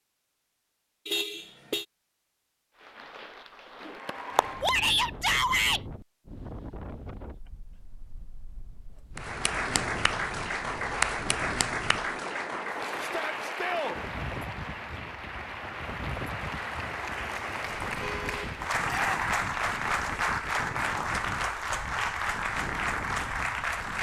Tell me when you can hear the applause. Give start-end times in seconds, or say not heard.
2.8-4.8, 9.2-23.9.